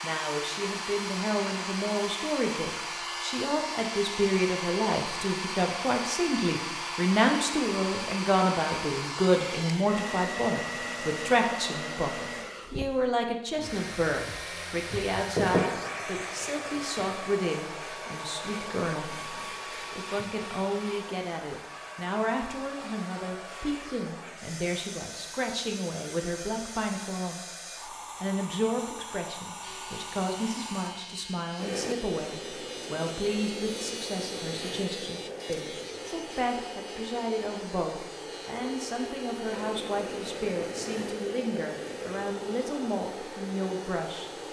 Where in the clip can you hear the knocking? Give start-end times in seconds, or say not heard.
14.9-15.7.